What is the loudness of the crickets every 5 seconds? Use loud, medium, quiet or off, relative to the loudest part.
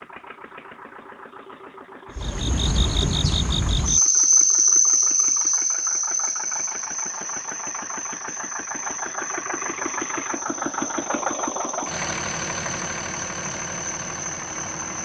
loud, medium, quiet.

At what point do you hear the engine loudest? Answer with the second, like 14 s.
11 s.